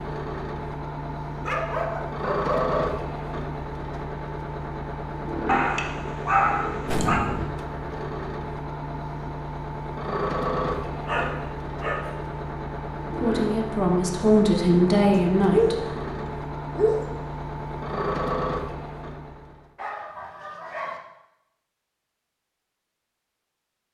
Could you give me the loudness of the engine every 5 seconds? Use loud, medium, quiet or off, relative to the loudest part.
loud, loud, loud, loud, off.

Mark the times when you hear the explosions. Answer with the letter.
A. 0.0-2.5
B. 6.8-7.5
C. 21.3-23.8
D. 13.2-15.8
B.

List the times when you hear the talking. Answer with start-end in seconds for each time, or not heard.
13.2-15.8.